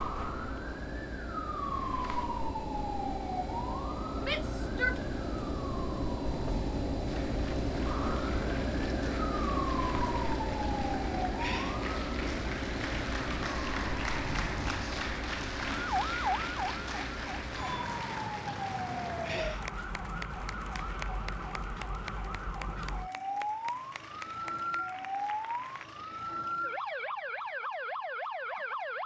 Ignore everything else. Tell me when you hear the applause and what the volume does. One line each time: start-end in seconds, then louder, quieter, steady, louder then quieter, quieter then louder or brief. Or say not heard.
7.0-25.9 louder then quieter.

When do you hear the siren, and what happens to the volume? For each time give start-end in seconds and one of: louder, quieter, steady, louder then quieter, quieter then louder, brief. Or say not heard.
0.0-29.0 steady.